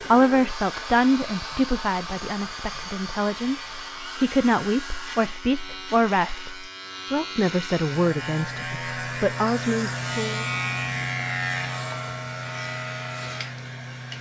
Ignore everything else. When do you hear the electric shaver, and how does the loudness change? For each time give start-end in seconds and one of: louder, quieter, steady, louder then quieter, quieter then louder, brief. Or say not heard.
0.0-14.1 louder.